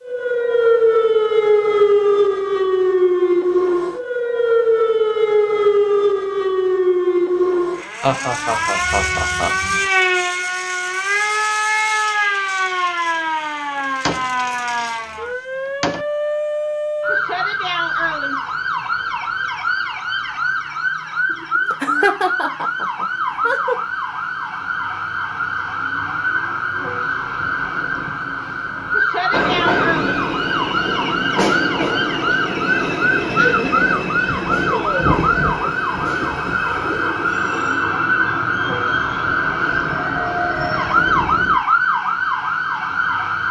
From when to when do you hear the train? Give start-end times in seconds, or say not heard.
29.3-41.6.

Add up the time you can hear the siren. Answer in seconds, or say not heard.
43 s.